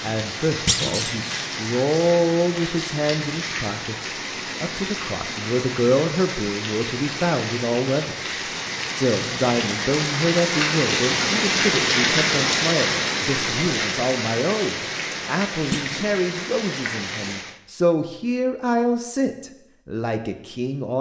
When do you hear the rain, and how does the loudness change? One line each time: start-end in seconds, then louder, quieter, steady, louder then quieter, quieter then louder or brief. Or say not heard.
0.0-17.6 louder then quieter.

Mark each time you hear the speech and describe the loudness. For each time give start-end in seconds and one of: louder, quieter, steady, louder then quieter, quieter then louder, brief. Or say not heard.
0.0-20.9 steady.